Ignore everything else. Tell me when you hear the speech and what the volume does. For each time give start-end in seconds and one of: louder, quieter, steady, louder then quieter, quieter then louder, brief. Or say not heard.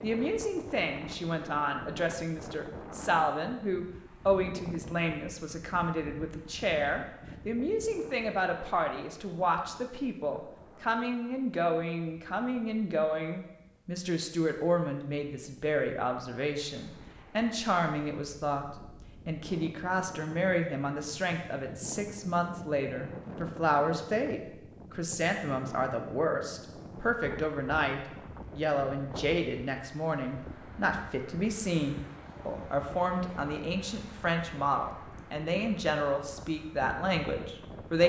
0.0-38.0 steady.